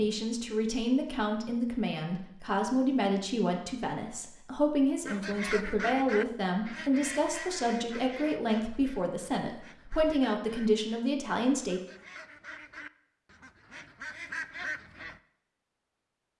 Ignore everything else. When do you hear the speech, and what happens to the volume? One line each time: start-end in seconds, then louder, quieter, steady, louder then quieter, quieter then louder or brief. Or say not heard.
0.0-11.8 steady.